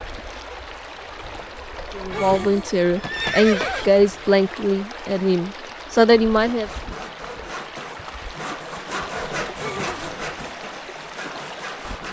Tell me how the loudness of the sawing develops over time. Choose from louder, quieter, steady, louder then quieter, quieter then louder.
louder then quieter.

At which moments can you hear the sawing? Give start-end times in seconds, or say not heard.
6.3-12.0.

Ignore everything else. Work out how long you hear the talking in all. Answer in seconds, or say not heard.
5 s.